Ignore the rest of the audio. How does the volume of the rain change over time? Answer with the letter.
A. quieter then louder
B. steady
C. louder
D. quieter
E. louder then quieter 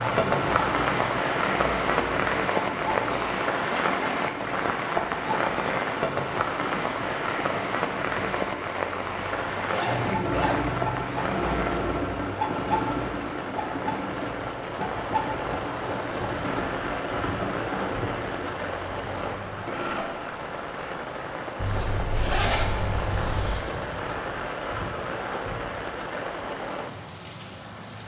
D.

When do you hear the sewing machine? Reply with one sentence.
The sewing machine can be heard from 0.0 to 20.9 s.